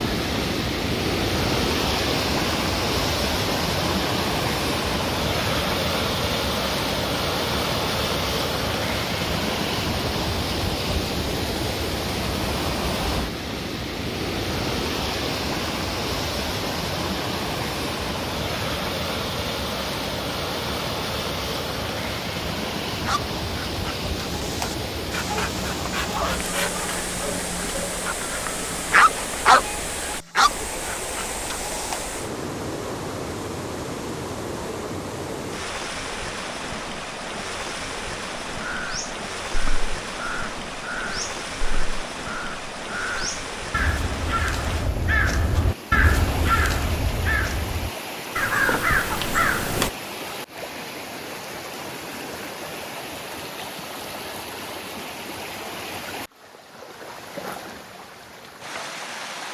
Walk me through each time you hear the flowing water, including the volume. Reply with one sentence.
You can hear the flowing water from 0.0 to 59.5 s, getting quieter.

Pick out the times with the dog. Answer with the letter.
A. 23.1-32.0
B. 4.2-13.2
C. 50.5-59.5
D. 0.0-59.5
A.